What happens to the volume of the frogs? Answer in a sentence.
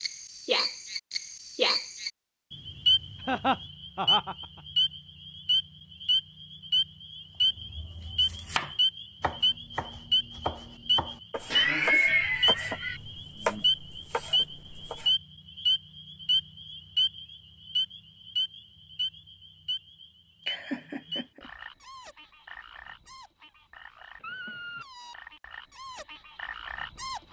The loudness of the frogs goes down.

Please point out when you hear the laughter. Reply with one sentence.
The laughter can be heard from 3.2 to 4.5 s, from 11.5 to 13.0 s and from 20.4 to 21.5 s.